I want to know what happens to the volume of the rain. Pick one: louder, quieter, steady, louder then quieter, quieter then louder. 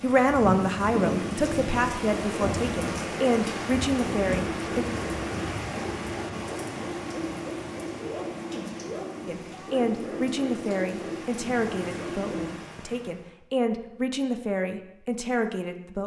quieter.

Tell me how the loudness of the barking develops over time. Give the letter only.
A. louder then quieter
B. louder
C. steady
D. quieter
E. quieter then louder
C.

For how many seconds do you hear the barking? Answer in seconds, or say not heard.
11 s.